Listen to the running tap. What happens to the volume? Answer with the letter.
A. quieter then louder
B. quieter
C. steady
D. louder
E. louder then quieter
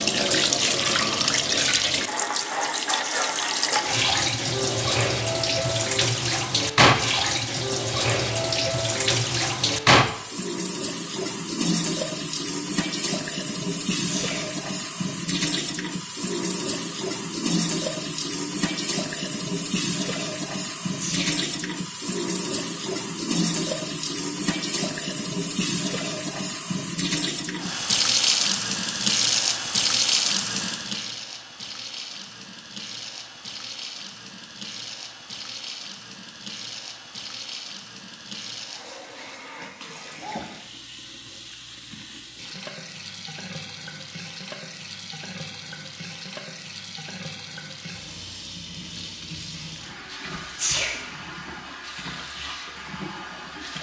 B.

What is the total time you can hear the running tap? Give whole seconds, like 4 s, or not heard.
54 s.